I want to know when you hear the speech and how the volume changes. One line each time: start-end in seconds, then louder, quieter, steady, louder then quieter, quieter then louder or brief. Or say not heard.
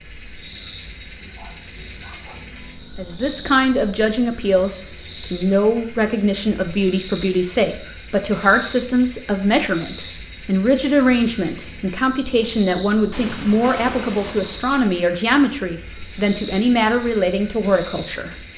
3.0-18.4 steady.